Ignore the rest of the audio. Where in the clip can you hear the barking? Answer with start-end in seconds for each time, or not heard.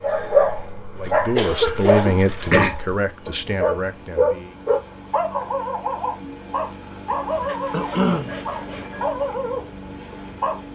0.0-10.6.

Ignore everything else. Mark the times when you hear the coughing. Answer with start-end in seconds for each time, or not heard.
1.4-2.1, 7.7-8.3.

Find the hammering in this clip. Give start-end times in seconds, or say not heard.
not heard.